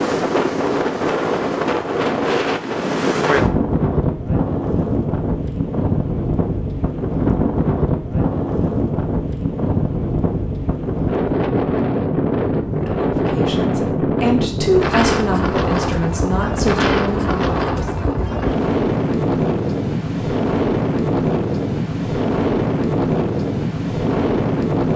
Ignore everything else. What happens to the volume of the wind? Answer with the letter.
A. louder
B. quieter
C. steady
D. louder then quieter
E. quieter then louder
C.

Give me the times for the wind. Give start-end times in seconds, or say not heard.
0.0-24.9.